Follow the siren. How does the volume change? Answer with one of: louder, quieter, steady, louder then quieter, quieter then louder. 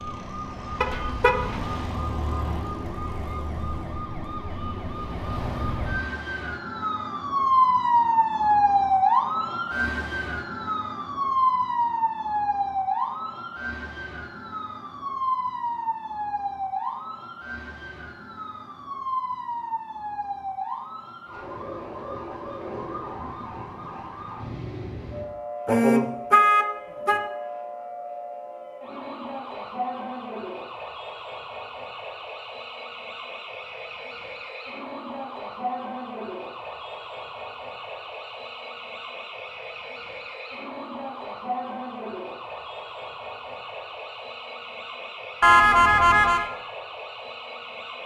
quieter.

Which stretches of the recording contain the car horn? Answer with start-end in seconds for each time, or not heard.
0.8-1.6, 25.6-27.2, 45.4-46.5.